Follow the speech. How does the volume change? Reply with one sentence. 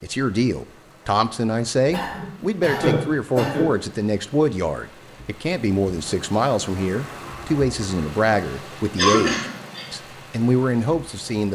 The loudness of the speech stays about the same.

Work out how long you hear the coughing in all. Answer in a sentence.
The coughing can be heard for 3 seconds in total.